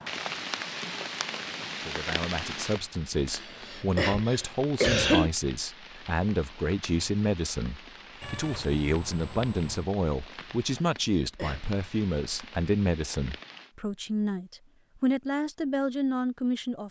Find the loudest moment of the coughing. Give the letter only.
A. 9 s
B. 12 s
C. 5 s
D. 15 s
C.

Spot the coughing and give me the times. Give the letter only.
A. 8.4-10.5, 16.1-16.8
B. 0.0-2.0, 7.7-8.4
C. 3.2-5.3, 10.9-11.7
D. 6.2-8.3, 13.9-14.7
C.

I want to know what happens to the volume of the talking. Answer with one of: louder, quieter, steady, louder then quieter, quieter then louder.
steady.